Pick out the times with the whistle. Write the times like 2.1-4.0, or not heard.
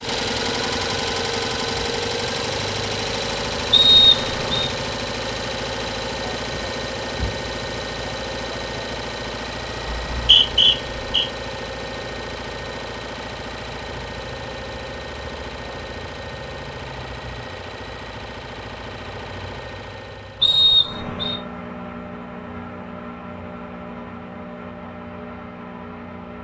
3.7-4.7, 9.9-11.2, 20.4-21.4.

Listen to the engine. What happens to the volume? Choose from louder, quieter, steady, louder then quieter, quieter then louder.
quieter.